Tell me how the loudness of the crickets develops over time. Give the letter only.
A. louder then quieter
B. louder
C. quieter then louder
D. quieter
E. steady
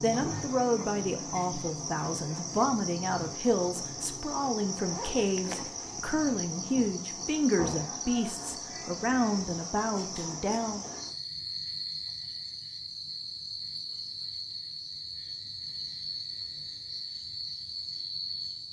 E.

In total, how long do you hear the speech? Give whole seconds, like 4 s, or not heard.
11 s.